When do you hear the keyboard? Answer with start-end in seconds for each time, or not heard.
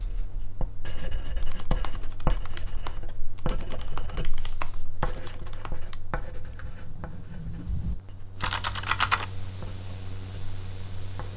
1.4-9.2.